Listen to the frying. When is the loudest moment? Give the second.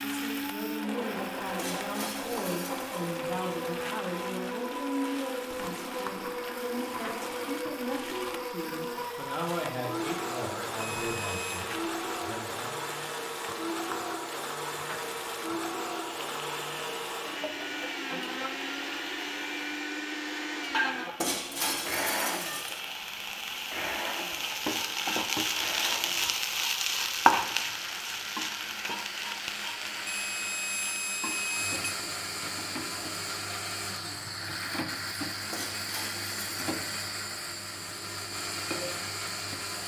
27 s.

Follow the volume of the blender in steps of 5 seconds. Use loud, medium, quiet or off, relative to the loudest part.
loud, loud, loud, loud, loud, medium, loud, loud.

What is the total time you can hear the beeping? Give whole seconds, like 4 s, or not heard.
3 s.